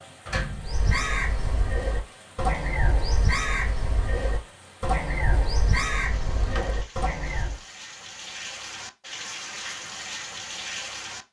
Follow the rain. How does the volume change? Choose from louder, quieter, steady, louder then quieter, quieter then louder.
louder.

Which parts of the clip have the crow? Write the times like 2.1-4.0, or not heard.
0.6-7.6.